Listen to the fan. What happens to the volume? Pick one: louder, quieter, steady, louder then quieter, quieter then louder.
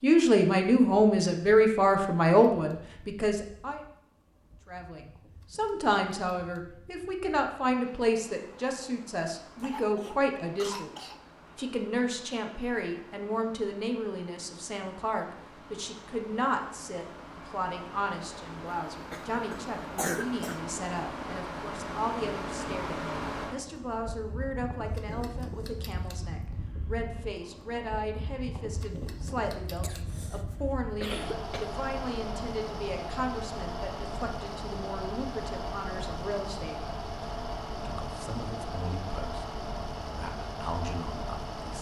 louder.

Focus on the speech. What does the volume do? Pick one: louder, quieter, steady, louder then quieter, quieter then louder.
quieter.